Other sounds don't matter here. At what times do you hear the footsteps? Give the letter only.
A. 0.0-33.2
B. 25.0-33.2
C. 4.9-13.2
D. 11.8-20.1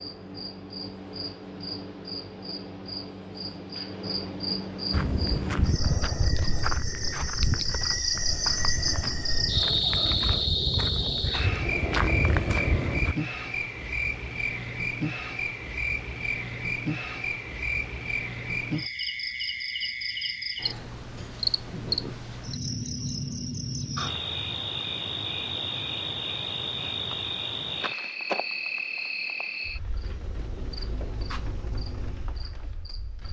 C.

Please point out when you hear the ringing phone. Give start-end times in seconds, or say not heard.
not heard.